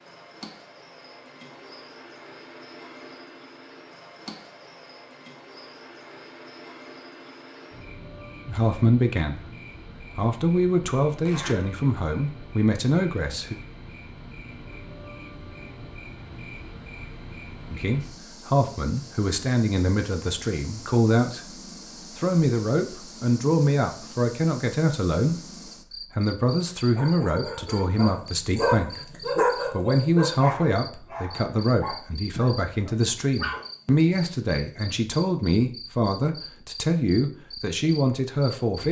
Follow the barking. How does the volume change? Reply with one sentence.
The loudness of the barking goes up, then down.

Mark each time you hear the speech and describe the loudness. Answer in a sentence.
The speech can be heard from 8.4 to 13.6 s, at a steady volume; and from 17.7 to 38.8 s, at a steady volume.